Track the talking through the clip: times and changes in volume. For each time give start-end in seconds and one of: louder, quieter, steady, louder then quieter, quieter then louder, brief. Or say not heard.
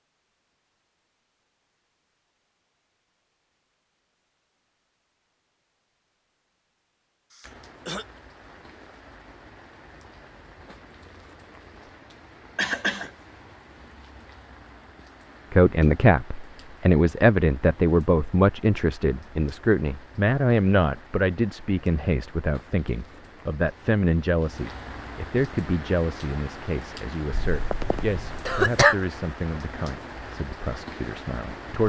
15.5-31.8 quieter.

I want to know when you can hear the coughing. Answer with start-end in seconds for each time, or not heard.
7.3-8.1, 12.6-13.1, 27.3-28.9.